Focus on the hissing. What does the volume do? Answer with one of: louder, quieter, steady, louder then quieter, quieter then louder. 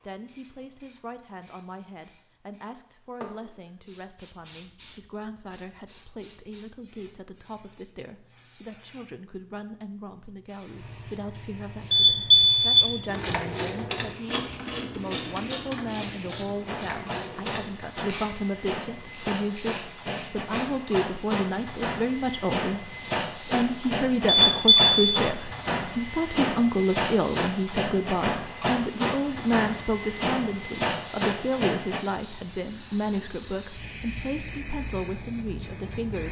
louder.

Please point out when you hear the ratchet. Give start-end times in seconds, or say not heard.
13.1-20.6.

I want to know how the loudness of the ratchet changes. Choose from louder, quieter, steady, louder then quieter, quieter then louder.
quieter.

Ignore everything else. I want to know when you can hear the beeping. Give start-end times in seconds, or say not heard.
11.9-12.9, 24.4-25.2.